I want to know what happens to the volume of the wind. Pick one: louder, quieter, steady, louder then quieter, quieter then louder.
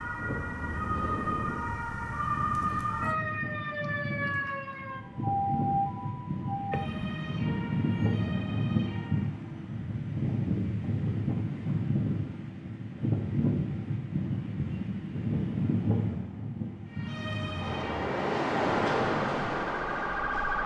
louder.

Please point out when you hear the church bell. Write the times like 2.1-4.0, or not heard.
not heard.